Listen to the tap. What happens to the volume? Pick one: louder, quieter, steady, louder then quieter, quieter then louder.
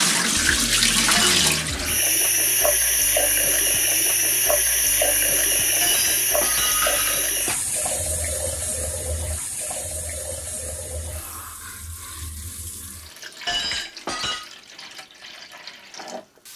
quieter.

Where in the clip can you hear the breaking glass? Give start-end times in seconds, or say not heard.
1.1-1.8, 5.8-7.6, 13.4-14.4.